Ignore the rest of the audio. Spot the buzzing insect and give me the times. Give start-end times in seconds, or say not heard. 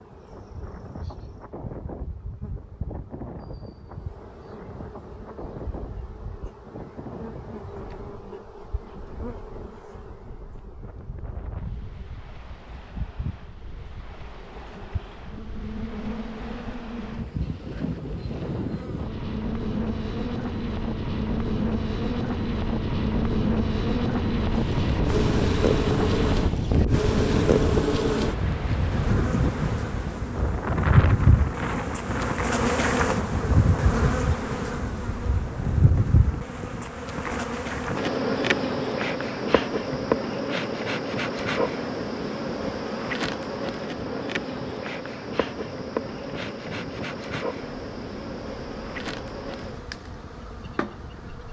0.0-51.4.